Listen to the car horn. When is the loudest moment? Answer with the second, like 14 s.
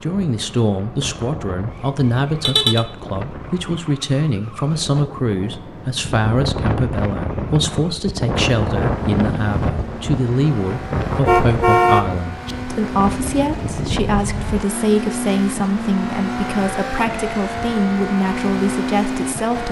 12 s.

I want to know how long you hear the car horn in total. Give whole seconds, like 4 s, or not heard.
2 s.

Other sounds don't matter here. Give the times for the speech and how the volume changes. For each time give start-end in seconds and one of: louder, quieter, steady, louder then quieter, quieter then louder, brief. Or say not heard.
0.0-19.6 steady.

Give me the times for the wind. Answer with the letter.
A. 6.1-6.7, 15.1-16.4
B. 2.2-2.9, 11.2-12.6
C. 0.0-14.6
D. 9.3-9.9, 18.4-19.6
C.